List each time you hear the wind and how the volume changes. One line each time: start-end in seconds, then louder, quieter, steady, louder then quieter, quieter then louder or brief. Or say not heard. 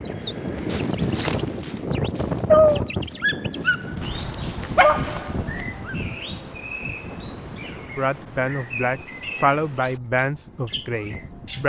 0.0-11.6 quieter.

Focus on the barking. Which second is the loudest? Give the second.
3 s.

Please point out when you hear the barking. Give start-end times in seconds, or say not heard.
0.6-6.0.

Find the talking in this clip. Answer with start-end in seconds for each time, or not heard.
8.0-11.6.